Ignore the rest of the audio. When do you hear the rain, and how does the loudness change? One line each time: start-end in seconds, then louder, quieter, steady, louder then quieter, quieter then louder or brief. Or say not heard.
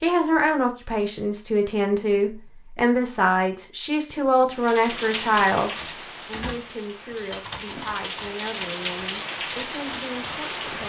4.5-10.8 quieter then louder.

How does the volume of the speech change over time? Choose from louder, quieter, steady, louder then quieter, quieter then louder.
quieter.